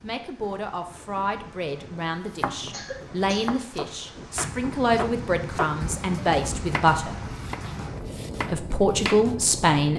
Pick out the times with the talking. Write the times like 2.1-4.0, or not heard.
0.0-7.2, 8.5-9.9.